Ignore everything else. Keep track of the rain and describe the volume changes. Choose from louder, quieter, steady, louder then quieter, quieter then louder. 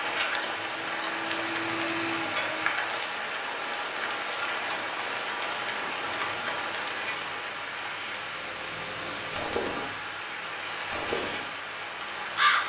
steady.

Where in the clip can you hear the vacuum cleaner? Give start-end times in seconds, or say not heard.
0.0-2.8, 6.0-12.6.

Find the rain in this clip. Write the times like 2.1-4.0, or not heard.
0.0-12.6.